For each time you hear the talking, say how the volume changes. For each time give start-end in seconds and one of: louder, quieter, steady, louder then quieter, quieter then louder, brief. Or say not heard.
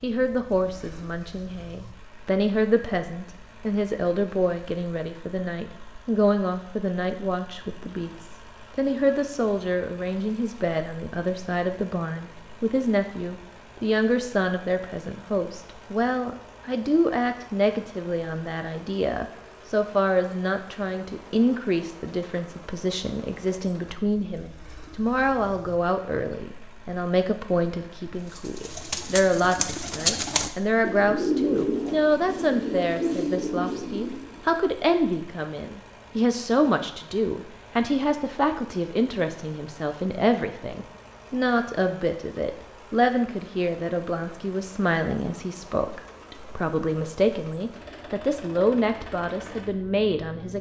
0.0-50.5 steady.